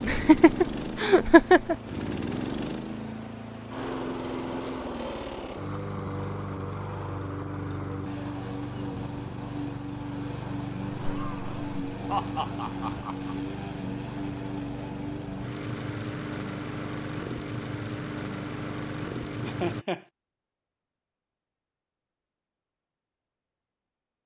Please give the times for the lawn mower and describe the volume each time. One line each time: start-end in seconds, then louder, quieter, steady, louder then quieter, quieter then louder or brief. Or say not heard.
0.0-19.9 steady.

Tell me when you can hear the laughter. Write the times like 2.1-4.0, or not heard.
0.0-1.8, 10.9-13.3, 19.4-20.1.